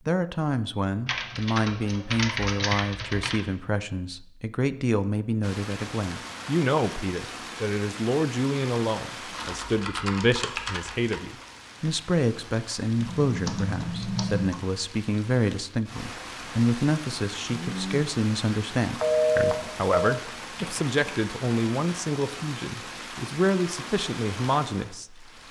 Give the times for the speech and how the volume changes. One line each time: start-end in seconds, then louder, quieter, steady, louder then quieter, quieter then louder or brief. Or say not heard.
0.1-25.3 steady.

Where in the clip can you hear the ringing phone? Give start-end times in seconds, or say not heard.
19.0-20.2.